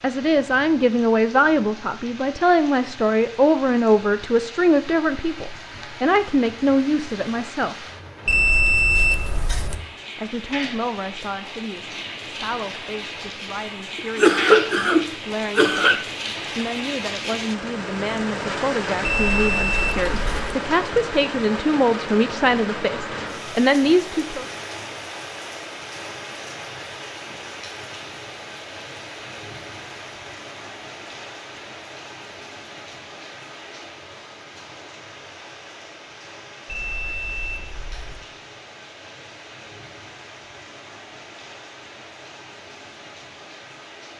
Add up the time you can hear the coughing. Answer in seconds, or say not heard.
2 s.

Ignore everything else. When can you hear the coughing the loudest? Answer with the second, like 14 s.
14 s.